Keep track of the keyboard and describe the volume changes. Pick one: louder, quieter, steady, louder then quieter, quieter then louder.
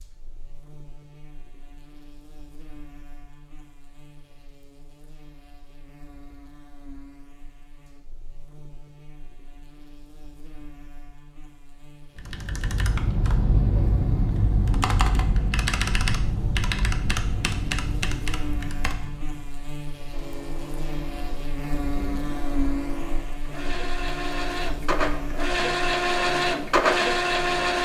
quieter.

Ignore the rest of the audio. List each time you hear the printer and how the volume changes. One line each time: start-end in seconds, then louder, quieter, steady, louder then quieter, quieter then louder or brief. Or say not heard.
20.1-27.8 louder.